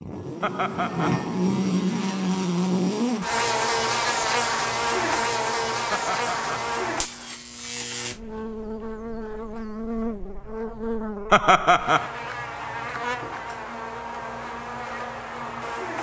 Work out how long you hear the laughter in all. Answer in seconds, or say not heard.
2 s.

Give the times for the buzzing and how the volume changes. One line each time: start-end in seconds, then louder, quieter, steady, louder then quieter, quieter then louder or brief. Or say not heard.
0.0-15.9 quieter.